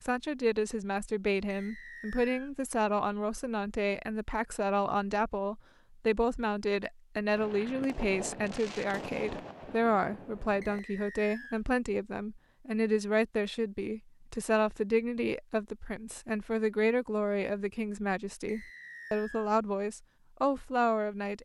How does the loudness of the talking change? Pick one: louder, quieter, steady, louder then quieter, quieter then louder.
steady.